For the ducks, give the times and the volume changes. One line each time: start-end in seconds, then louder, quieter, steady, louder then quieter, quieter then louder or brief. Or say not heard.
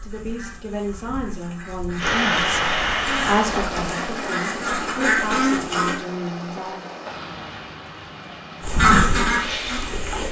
0.0-6.0 louder
8.6-10.2 brief.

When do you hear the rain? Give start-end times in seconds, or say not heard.
1.9-10.2.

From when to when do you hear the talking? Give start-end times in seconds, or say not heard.
0.0-6.8.